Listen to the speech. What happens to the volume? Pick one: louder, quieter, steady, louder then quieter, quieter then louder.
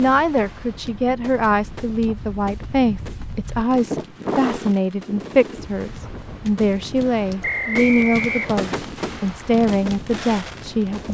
steady.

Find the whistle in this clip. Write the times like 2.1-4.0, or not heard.
7.4-8.7.